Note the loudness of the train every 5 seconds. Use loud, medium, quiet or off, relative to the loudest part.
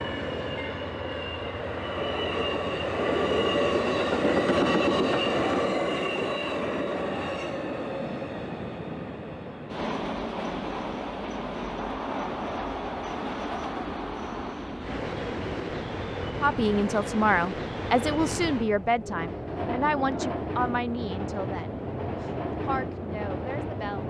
loud, loud, medium, medium, medium.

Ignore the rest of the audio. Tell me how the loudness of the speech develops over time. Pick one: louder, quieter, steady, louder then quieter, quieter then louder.
quieter.